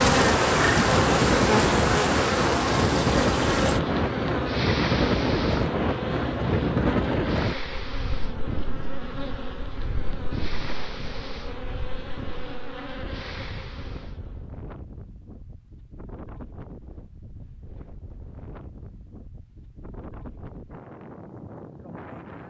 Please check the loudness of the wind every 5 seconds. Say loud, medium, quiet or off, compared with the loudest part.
loud, loud, quiet, quiet, quiet.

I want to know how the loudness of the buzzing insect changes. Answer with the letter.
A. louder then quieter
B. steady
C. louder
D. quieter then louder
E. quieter
E.